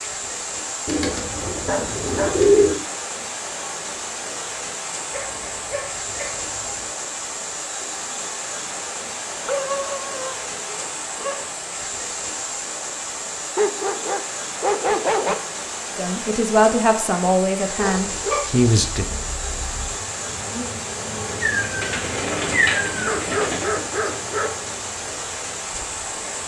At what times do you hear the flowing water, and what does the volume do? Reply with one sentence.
You can hear the flowing water from 0.0 to 26.4 s, at a steady volume.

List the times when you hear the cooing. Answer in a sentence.
The cooing can be heard from 0.8 to 2.8 s and from 21.2 to 23.7 s.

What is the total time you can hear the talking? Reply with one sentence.
The talking can be heard for 3 seconds in total.